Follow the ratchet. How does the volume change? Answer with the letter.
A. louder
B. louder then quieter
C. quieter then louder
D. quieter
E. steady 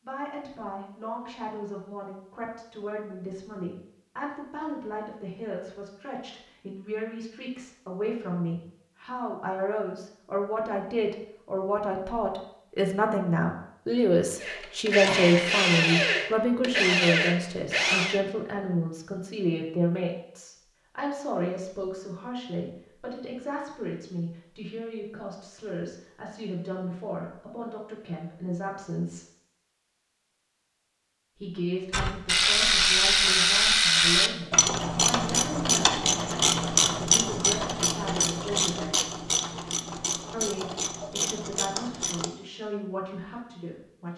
D.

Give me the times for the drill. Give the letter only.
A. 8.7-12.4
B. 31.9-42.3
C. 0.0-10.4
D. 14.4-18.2
D.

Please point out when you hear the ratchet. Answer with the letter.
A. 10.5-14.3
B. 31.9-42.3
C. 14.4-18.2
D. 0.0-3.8
B.